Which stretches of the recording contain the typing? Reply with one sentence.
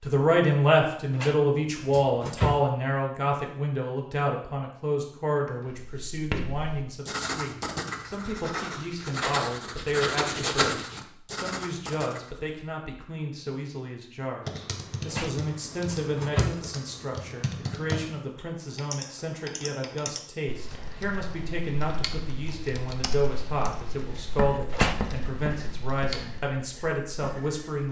The typing can be heard from 14.4 to 26.4 s.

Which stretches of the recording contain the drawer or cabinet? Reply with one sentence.
The drawer or cabinet can be heard from 1.1 to 2.6 s, from 15.1 to 16.6 s and from 24.7 to 25.2 s.